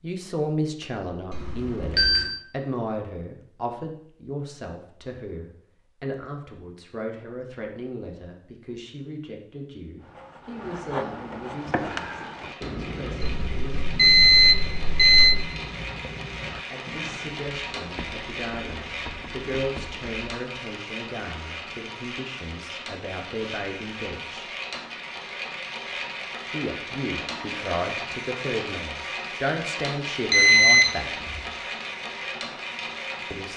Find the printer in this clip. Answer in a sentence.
The printer can be heard from 11.6 to 33.5 s.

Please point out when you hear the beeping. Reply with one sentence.
You can hear the beeping from 1.3 to 2.2 s, from 13.2 to 15.3 s and from 30.3 to 31.4 s.